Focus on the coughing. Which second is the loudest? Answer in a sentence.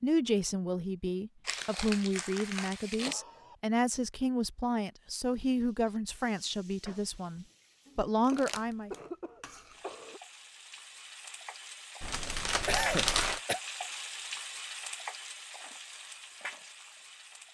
The volume of the coughing peaks at 13 seconds.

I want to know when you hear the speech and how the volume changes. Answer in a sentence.
The speech can be heard from 0.0 to 8.9 s, at a steady volume.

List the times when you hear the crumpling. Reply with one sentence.
You can hear the crumpling from 1.4 to 3.1 s, from 8.2 to 9.1 s and from 12.0 to 13.4 s.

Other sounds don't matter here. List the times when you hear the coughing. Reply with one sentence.
The coughing can be heard from 2.9 to 3.5 s, from 8.3 to 10.2 s and from 12.7 to 13.6 s.